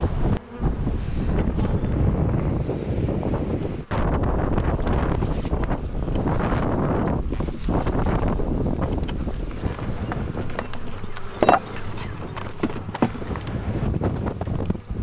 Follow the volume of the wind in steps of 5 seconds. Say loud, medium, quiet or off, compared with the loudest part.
loud, loud, medium.